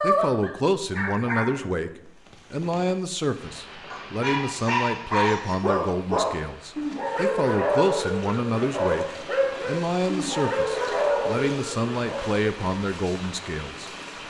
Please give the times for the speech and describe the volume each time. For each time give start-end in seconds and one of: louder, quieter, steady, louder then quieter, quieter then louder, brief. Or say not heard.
0.0-13.9 steady.